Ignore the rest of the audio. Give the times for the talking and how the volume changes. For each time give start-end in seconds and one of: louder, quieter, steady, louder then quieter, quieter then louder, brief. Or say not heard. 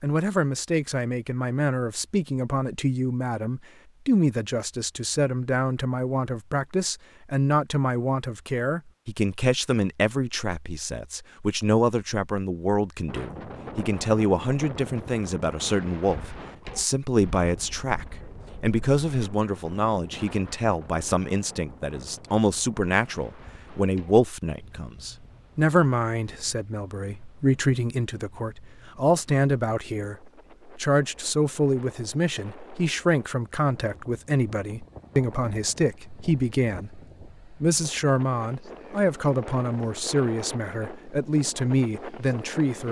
0.0-42.8 steady.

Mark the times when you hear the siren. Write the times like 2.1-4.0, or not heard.
not heard.